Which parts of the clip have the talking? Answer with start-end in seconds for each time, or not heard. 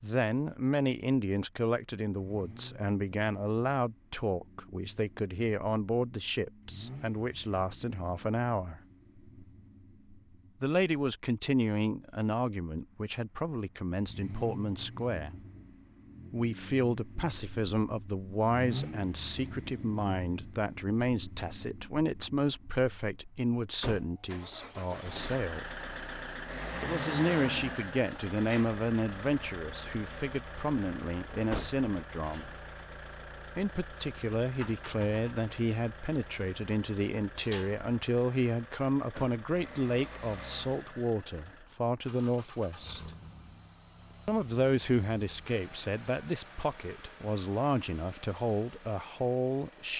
0.0-8.8, 10.6-15.4, 16.3-25.7, 26.8-32.5, 33.5-43.1, 44.2-49.9.